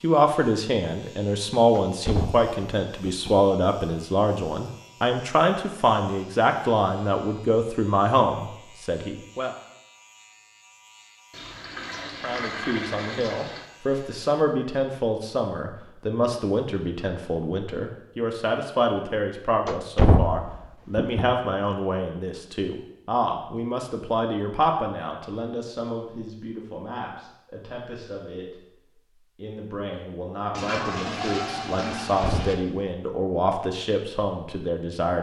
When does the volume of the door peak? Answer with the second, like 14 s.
20 s.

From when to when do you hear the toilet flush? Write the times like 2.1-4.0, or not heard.
11.3-13.7, 30.5-32.5.